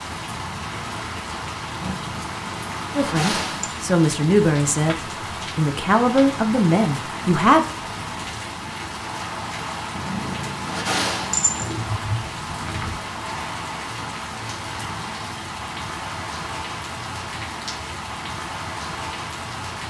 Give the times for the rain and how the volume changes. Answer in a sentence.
You can hear the rain from 0.0 to 19.8 s, at a steady volume.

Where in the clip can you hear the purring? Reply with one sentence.
You can hear the purring from 1.8 to 3.7 s and from 9.9 to 13.0 s.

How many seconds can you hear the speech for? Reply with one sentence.
The speech can be heard for 5 seconds in total.